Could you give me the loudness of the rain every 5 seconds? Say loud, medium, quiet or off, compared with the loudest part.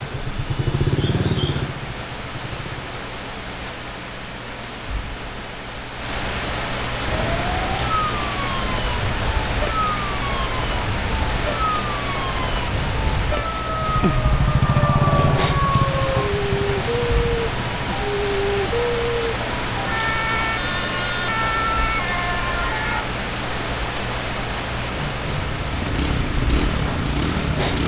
medium, loud, loud, loud, loud, loud.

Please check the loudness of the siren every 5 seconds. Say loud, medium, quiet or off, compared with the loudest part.
off, loud, loud, loud, loud, off.